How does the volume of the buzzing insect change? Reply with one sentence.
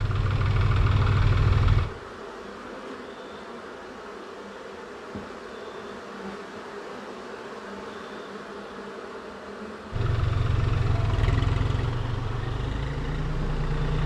The loudness of the buzzing insect stays about the same.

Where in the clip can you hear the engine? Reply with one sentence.
You can hear the engine from 0.0 to 1.9 s and from 9.9 to 14.0 s.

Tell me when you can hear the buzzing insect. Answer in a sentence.
You can hear the buzzing insect from 0.0 to 14.0 s.